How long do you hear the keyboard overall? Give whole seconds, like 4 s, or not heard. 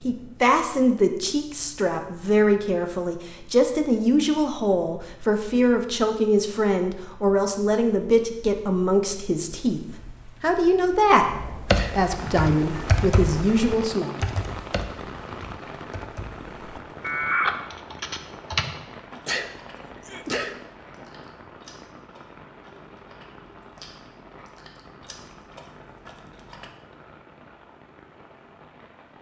7 s.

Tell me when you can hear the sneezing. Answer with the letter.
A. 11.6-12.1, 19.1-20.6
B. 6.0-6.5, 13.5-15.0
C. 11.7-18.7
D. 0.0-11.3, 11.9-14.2
A.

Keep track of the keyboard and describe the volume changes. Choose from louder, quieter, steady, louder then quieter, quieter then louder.
quieter then louder.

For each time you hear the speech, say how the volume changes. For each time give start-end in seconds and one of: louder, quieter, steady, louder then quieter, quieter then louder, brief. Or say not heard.
0.0-11.3 steady
11.9-14.2 brief.